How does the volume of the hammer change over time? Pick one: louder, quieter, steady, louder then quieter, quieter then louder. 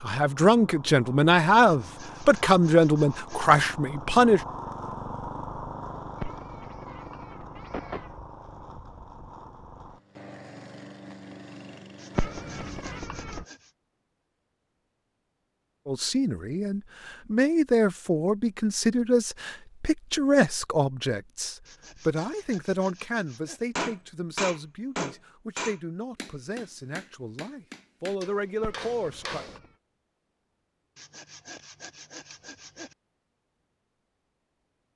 quieter.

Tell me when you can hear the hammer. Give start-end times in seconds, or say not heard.
23.8-29.6.